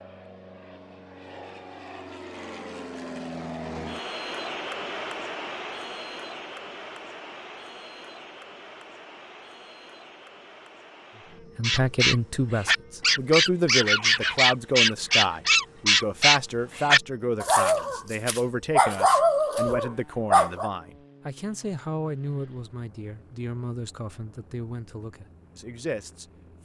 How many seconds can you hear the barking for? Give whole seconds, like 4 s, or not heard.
9 s.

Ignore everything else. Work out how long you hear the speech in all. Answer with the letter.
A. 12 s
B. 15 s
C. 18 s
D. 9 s
B.